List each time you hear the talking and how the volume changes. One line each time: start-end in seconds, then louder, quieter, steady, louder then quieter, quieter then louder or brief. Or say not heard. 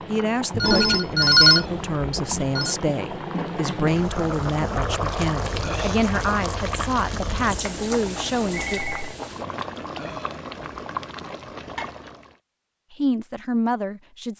0.1-8.8 steady
12.9-14.3 brief.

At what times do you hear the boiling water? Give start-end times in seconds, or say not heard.
0.0-12.4.